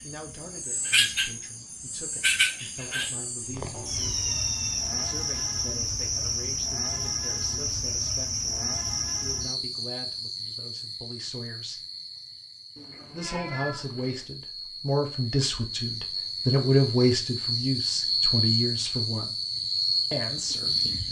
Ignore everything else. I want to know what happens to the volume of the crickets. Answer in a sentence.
The loudness of the crickets goes down, then up.